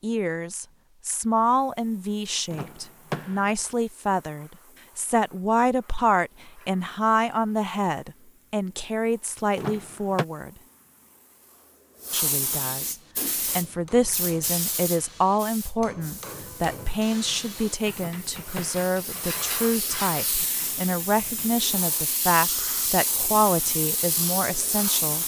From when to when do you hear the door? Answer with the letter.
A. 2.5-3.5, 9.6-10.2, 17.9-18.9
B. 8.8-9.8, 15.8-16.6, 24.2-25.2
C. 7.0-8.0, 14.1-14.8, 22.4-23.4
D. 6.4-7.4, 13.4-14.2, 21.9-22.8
A.